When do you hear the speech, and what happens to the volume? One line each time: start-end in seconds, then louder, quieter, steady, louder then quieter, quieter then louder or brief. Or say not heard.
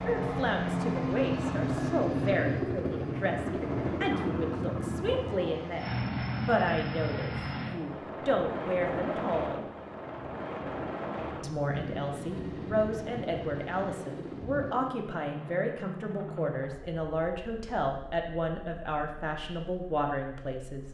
0.0-9.7 steady
11.4-20.8 steady.